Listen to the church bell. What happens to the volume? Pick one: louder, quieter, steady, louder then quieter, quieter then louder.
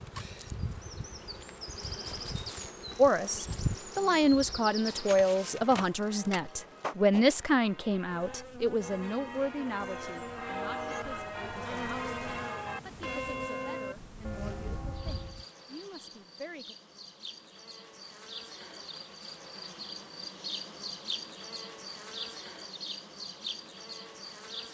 louder.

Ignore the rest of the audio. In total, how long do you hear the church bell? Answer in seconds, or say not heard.
11 s.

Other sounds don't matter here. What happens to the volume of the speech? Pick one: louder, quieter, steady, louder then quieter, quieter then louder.
quieter.